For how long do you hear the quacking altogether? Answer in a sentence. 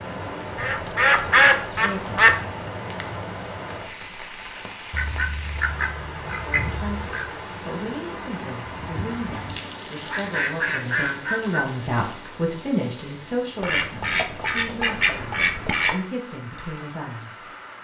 The quacking can be heard for 8 seconds in total.